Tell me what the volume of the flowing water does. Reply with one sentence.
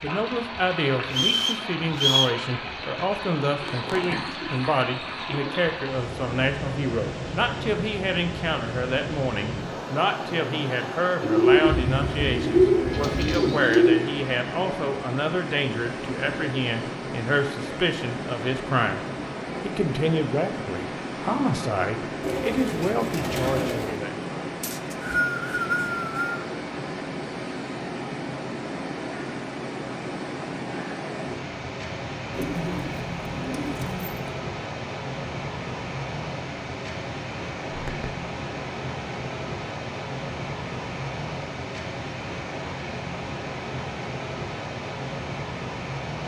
The volume of the flowing water stays about the same.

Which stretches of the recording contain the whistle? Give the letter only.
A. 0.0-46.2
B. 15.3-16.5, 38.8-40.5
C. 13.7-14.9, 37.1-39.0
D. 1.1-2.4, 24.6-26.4
D.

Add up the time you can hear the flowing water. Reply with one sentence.
The flowing water can be heard for 46 seconds in total.